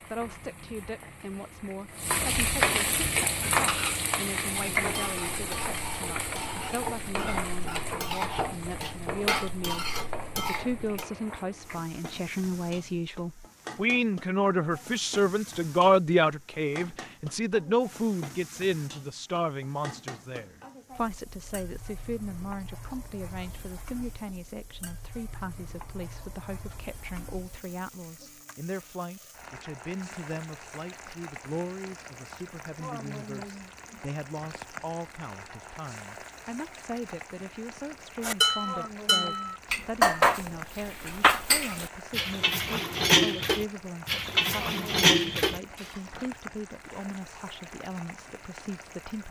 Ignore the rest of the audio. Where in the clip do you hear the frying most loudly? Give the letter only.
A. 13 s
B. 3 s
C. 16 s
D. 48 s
B.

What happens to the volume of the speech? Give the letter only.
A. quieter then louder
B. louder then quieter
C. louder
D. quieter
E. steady
B.